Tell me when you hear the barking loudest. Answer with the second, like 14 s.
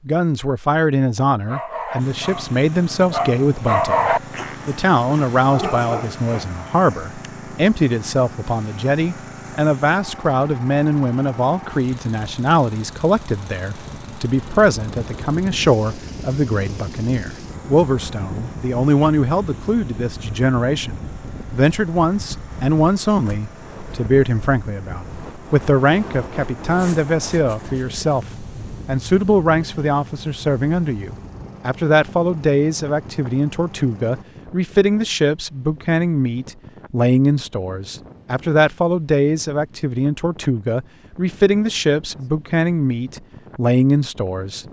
4 s.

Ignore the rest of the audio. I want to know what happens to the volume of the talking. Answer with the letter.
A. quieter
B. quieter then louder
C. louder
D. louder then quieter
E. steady
E.